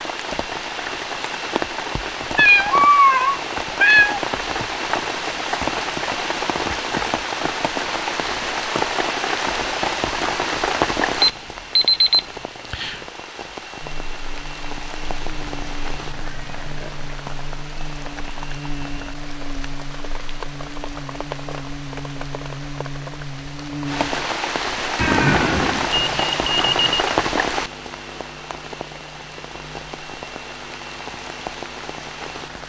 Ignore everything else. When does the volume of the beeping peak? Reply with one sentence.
The volume of the beeping peaks at 12 seconds.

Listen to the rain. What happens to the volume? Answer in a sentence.
The volume of the rain goes down, then up.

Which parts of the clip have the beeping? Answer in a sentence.
You can hear the beeping from 11.2 to 13.0 s and from 25.9 to 27.1 s.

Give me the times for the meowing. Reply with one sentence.
The meowing can be heard from 2.4 to 4.2 s, from 15.1 to 17.1 s and from 24.9 to 25.9 s.